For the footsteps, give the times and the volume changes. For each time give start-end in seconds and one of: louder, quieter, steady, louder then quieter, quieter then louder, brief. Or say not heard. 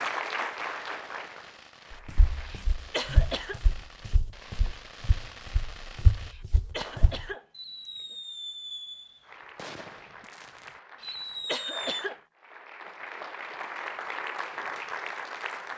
2.0-7.2 quieter then louder.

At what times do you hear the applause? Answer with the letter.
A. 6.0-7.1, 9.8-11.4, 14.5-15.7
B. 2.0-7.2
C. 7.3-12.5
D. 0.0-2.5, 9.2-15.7
D.